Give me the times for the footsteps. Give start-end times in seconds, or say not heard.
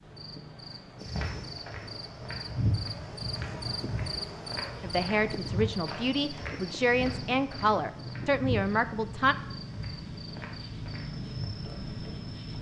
1.0-12.2.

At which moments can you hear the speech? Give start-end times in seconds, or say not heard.
4.8-9.3.